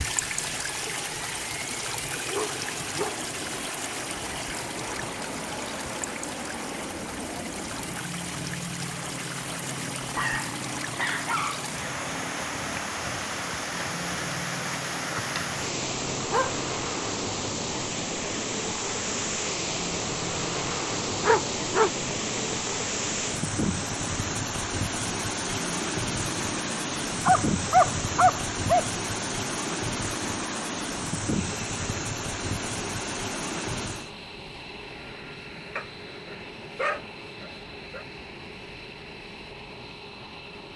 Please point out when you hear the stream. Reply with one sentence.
You can hear the stream from 0.0 to 34.1 s.